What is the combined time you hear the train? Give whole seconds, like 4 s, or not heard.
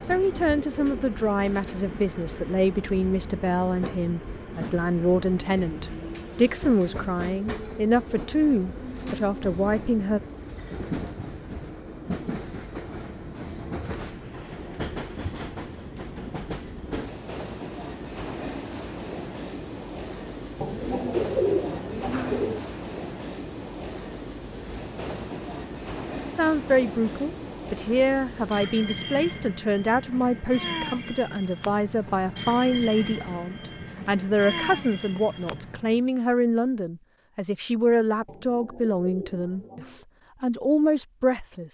36 s.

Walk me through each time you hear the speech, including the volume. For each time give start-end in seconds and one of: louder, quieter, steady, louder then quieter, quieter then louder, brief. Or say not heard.
0.0-10.2 steady
26.4-41.6 steady.